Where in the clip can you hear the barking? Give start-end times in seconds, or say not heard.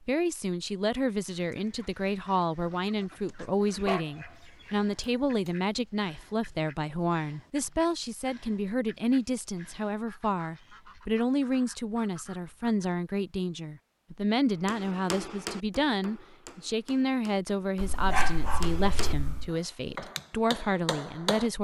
3.8-5.5, 17.8-19.5.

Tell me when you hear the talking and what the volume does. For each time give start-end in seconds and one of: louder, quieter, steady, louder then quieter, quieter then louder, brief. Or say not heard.
0.0-21.5 steady.